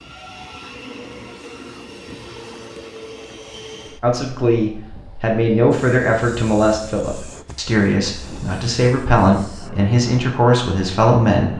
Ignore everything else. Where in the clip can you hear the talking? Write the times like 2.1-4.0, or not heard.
4.0-11.5.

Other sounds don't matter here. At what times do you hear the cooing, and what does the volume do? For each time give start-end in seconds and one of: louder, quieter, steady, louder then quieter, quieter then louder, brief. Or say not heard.
not heard.